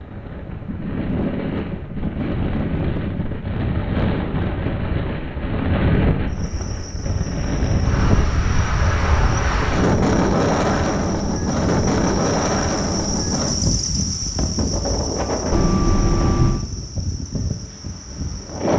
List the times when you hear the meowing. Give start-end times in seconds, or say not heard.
15.5-16.6.